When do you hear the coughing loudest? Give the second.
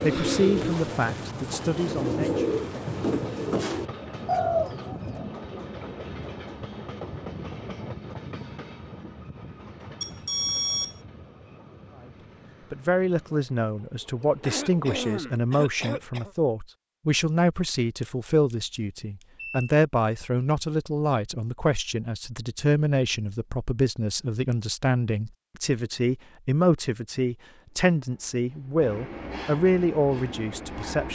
15 s.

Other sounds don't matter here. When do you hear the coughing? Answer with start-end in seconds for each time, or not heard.
14.4-16.4.